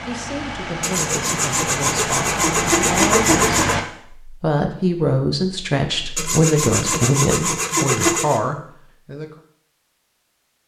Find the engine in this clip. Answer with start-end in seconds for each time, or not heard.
0.0-3.9.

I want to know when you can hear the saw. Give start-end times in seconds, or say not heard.
0.8-3.8, 6.2-8.4.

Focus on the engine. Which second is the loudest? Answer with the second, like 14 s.
3 s.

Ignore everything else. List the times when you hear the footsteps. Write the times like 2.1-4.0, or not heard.
not heard.